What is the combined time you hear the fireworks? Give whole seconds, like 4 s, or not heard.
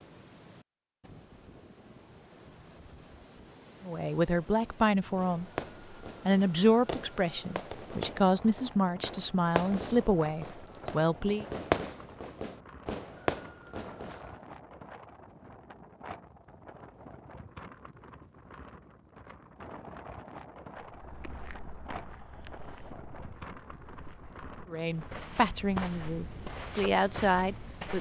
9 s.